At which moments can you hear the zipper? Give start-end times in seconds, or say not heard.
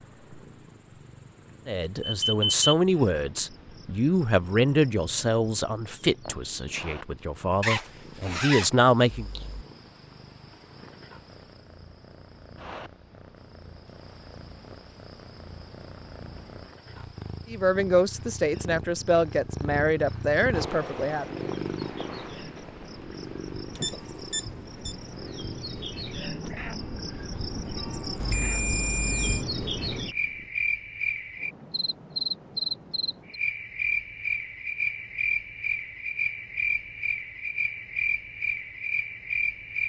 7.6-9.7.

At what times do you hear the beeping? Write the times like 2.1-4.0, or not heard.
2.0-2.7, 23.8-24.9, 28.1-29.4.